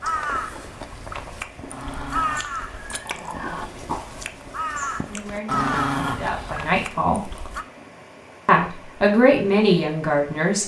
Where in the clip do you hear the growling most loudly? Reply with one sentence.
The volume of the growling peaks at 6 seconds.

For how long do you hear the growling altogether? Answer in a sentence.
The growling can be heard for 3 seconds in total.